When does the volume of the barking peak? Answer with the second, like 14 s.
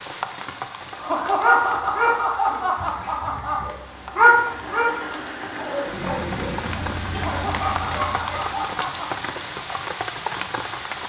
4 s.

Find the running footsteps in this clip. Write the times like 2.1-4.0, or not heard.
not heard.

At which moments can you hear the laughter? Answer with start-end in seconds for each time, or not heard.
0.9-3.6, 7.1-9.3.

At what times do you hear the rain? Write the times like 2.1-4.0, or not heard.
0.0-11.0.